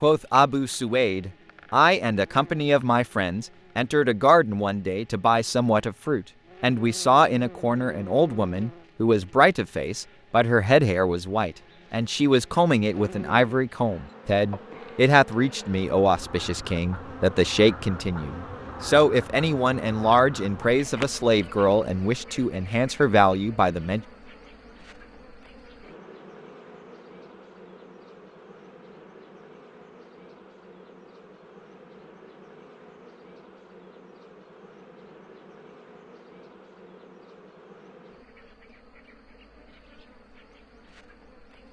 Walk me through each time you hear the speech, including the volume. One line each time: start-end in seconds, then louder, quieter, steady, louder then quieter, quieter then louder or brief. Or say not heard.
0.0-24.0 steady.